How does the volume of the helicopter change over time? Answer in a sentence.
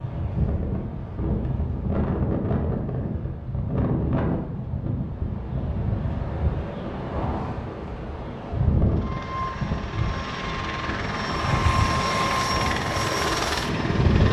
The loudness of the helicopter goes up.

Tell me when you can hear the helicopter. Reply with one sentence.
The helicopter can be heard from 8.8 to 14.2 s.